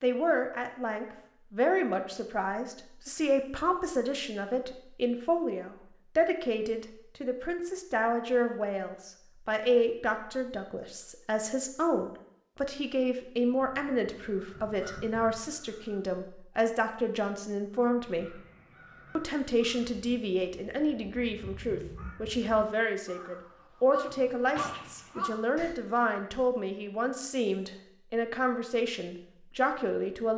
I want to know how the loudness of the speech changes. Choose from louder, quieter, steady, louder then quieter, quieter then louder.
steady.